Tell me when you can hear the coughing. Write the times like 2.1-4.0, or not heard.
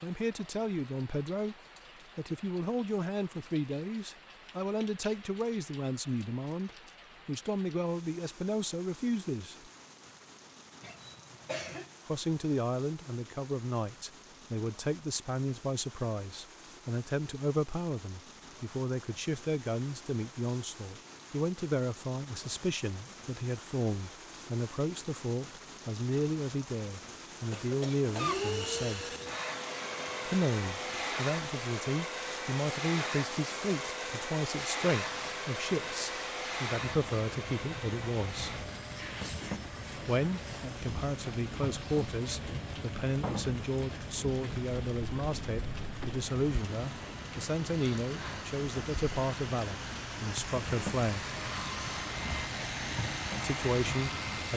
10.8-11.9, 27.5-28.4, 48.0-48.5.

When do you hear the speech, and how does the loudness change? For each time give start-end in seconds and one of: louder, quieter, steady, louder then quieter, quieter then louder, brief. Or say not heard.
0.0-1.6 brief
2.1-9.7 steady
12.1-29.1 steady
30.2-38.6 steady
40.0-51.4 steady
53.4-54.5 brief.